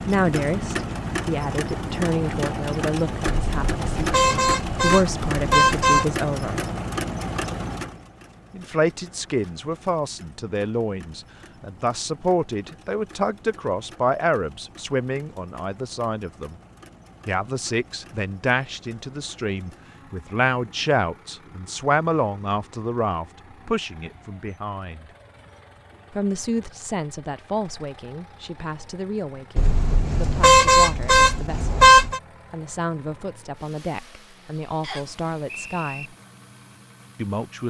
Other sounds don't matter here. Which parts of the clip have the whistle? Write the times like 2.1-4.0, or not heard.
34.8-36.1.